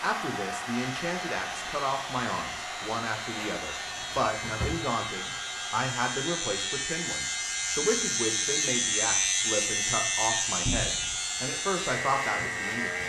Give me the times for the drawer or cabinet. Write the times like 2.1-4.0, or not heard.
3.4-4.8, 10.7-11.2.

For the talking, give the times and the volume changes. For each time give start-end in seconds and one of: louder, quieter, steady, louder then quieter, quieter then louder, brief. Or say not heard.
0.0-13.0 steady.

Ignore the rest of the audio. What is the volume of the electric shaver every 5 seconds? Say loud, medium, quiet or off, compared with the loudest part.
medium, loud, loud.